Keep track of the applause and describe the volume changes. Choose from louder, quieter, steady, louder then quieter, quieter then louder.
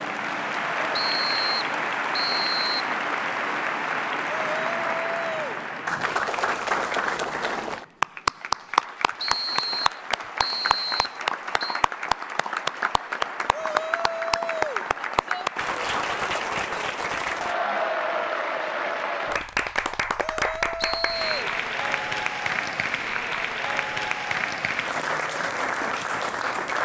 steady.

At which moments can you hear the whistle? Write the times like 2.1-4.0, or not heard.
1.1-2.9, 9.2-11.8, 20.8-21.3.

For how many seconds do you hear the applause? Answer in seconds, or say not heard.
27 s.